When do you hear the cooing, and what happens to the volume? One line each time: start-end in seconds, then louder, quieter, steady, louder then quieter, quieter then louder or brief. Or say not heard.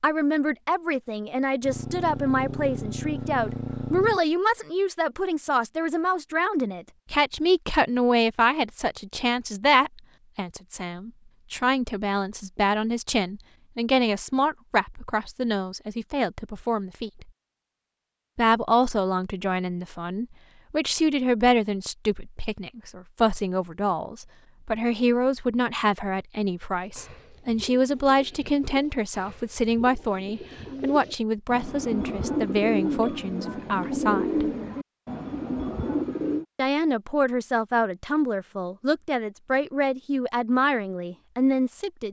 26.8-36.5 louder.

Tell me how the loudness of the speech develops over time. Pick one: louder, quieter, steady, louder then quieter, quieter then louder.
steady.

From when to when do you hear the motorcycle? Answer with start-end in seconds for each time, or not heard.
1.6-4.2.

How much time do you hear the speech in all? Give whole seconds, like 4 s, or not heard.
39 s.